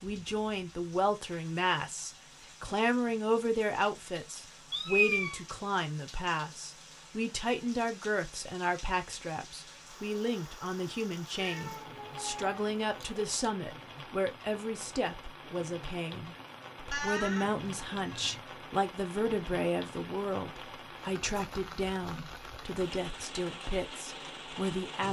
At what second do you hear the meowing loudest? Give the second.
5 s.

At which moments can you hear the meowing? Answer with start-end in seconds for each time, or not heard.
4.7-5.4, 11.3-13.2, 16.9-18.4.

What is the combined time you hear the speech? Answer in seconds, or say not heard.
25 s.